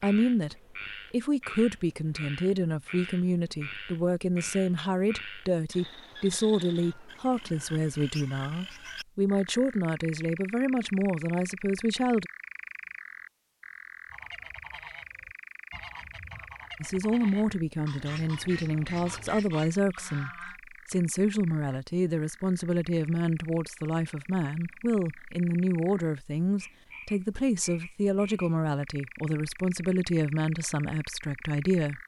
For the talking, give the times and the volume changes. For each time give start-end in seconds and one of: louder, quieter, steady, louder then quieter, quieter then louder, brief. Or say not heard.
0.0-12.3 steady
16.8-32.0 steady.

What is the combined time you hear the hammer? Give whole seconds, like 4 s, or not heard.
not heard.